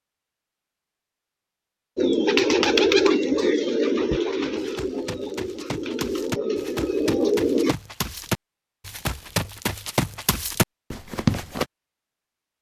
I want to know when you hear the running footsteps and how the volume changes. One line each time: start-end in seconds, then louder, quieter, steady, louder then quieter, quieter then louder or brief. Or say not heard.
4.1-11.7 louder.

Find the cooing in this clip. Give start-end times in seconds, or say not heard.
1.9-7.8.